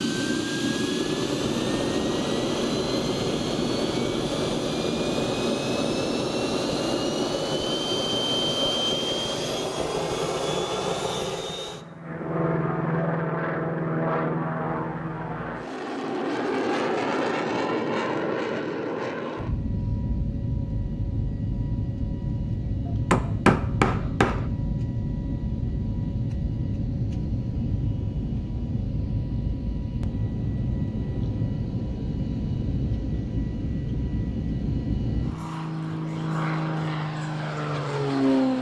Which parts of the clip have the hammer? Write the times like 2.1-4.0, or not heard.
22.9-24.5.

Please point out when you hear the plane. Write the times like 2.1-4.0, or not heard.
0.0-38.5.